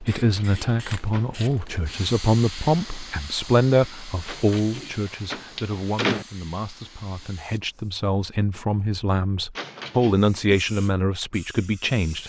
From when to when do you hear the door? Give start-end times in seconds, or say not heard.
0.1-1.4, 4.2-6.2, 9.6-10.2.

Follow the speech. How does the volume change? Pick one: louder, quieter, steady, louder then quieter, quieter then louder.
quieter then louder.